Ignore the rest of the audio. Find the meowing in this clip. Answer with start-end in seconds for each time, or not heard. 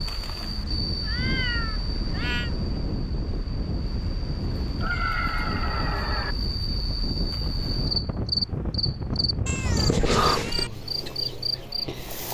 0.4-2.5, 4.8-6.3, 9.4-10.7.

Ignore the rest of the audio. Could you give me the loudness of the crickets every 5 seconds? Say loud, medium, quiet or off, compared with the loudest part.
medium, loud, loud.